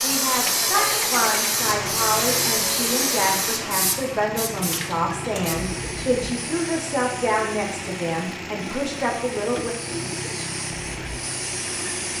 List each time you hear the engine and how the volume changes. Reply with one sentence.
The engine can be heard from 0.5 to 12.1 s, at a steady volume.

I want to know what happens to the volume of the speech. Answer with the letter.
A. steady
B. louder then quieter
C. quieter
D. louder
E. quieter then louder
A.